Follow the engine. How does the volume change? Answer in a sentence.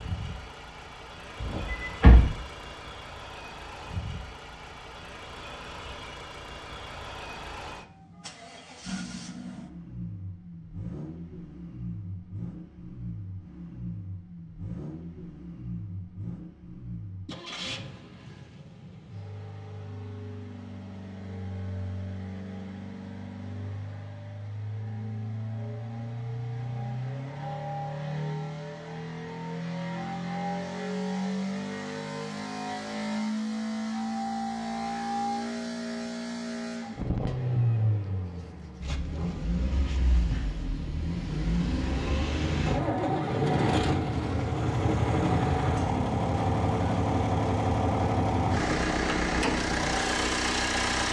The loudness of the engine goes up.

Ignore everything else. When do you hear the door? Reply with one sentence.
The door can be heard from 1.4 to 2.4 s.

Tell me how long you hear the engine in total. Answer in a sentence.
The engine can be heard for 51 seconds in total.